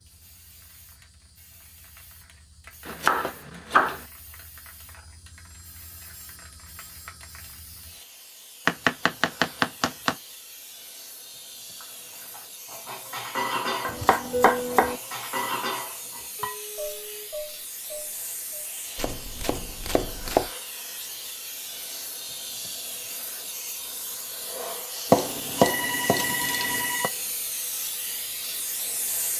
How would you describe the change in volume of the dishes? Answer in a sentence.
The volume of the dishes goes up, then down.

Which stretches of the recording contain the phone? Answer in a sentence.
You can hear the phone from 5.4 to 7.4 s, from 16.4 to 17.3 s and from 25.6 to 27.1 s.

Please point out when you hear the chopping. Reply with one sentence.
The chopping can be heard from 2.9 to 4.0 s, from 8.7 to 10.2 s, from 13.8 to 15.0 s, from 18.9 to 20.5 s and from 25.1 to 27.1 s.